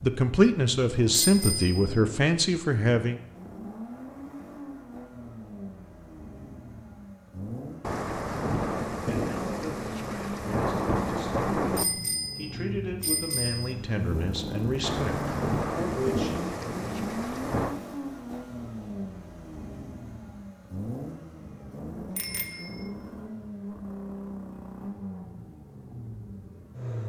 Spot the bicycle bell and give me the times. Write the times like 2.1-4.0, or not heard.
1.1-1.8, 11.8-13.8, 22.1-22.9.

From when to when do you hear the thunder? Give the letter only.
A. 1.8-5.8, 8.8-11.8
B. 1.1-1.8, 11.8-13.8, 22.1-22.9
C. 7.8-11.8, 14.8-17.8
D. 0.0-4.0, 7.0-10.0
C.